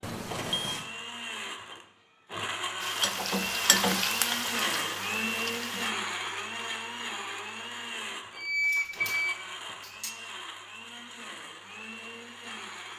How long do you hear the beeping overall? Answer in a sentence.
You can hear the beeping for 3 seconds altogether.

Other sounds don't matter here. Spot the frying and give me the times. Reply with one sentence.
The frying can be heard from 2.8 to 5.9 s.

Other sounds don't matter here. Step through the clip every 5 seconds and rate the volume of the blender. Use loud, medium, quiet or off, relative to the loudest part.
loud, loud, medium.